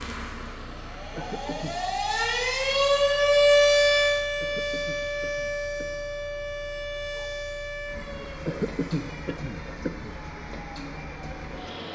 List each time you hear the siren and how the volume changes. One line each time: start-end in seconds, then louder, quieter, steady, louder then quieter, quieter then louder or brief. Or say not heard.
0.0-11.9 louder then quieter.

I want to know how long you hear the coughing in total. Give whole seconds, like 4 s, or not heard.
4 s.